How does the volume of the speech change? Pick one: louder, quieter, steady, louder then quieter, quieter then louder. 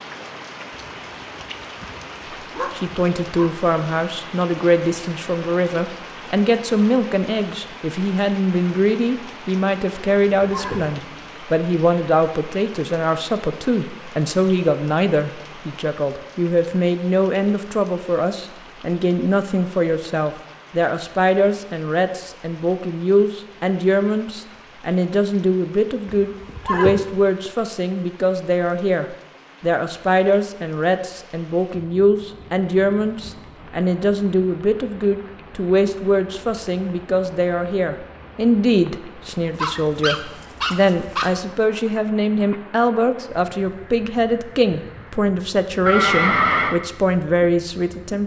steady.